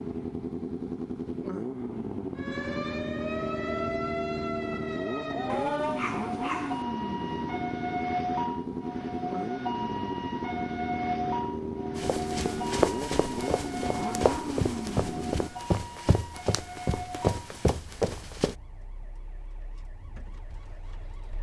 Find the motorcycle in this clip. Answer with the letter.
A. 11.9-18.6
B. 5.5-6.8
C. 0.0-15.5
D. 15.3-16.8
C.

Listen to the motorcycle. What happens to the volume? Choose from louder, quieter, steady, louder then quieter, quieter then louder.
steady.